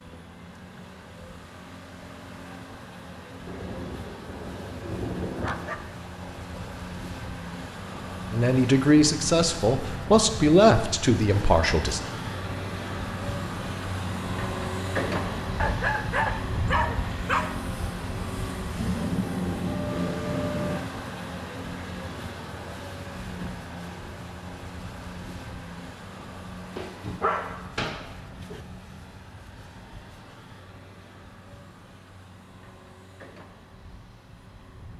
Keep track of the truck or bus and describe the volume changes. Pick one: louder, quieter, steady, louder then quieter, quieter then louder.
louder then quieter.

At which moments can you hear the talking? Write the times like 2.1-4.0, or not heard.
8.3-12.0.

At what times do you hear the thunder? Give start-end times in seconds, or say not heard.
3.5-5.5, 18.8-20.8.